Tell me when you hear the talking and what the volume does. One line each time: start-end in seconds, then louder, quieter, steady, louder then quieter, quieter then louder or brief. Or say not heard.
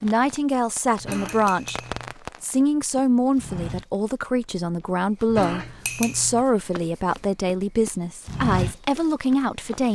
0.0-1.8 brief
2.4-9.9 steady.